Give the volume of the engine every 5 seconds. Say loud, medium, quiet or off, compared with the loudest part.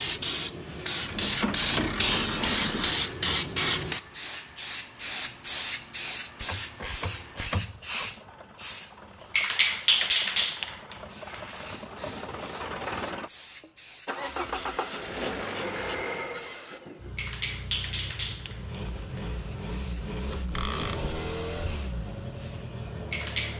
quiet, quiet, loud, loud, loud.